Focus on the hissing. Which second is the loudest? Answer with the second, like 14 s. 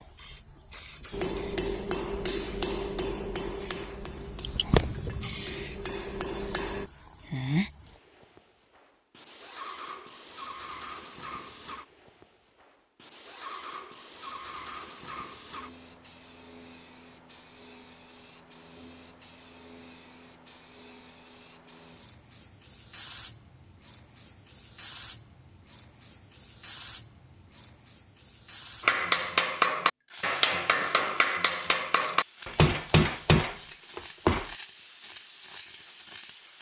5 s.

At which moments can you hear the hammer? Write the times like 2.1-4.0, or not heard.
1.1-6.8, 28.8-34.5.